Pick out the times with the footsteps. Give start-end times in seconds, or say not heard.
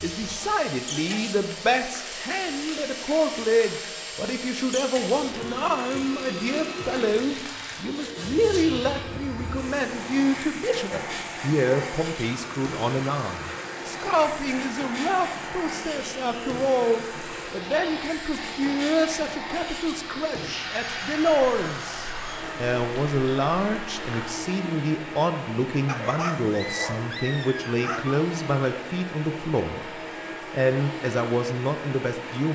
not heard.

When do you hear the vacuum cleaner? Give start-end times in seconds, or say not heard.
0.0-32.5.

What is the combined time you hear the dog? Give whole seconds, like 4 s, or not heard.
2 s.